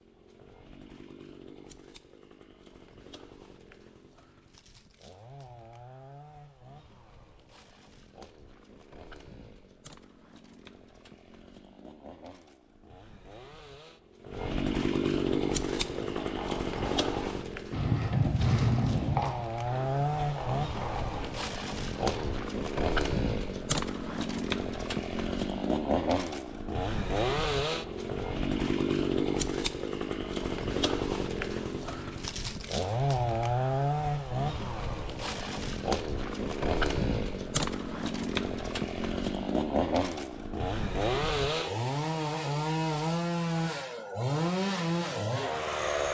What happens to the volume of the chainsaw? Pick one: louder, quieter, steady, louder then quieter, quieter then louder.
louder.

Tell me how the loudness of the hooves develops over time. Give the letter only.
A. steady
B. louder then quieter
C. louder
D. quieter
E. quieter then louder
B.